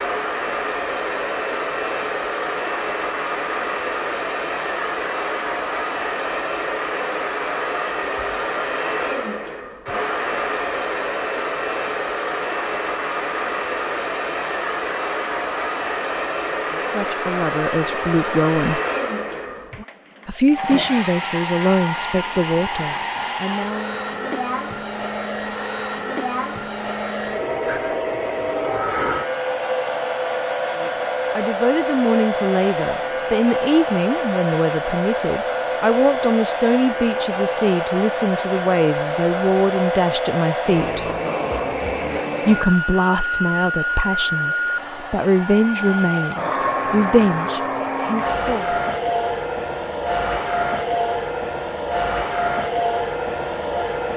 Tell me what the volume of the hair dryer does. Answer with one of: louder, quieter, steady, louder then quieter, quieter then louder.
steady.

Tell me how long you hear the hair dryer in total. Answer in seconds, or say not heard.
54 s.